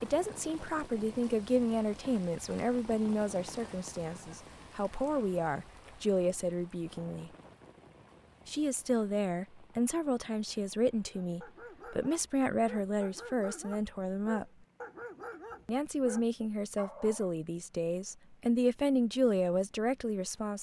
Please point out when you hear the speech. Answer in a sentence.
The speech can be heard from 0.0 to 7.3 s, from 8.4 to 14.4 s and from 15.7 to 20.5 s.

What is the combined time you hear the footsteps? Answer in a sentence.
The footsteps can't be heard in this clip.